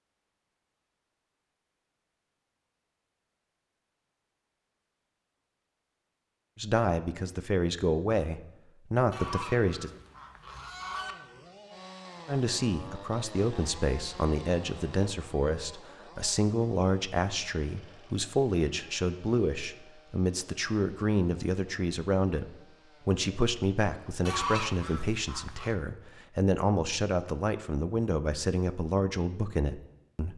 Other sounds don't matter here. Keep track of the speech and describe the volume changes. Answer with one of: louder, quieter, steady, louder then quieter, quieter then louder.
steady.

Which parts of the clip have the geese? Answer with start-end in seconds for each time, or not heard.
9.1-11.2, 24.2-25.8.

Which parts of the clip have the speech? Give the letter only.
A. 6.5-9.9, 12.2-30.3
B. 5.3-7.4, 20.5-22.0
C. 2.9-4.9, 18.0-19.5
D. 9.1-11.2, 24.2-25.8
A.